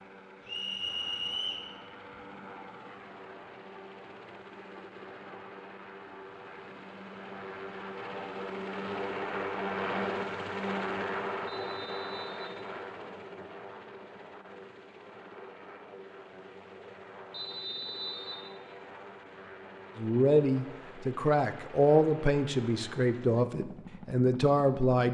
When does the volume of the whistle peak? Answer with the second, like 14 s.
1 s.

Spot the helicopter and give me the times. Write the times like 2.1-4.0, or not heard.
0.0-25.0.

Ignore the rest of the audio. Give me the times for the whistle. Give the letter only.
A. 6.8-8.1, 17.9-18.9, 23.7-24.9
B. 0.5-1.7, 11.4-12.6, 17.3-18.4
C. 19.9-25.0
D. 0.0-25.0
B.